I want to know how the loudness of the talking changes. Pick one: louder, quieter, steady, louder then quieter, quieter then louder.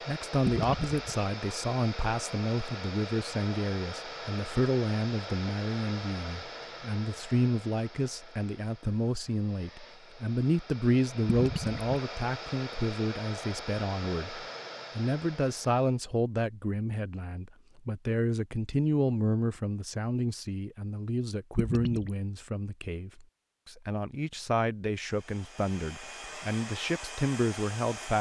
steady.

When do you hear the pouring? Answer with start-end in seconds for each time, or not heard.
0.5-1.1, 11.2-12.0, 21.6-22.1.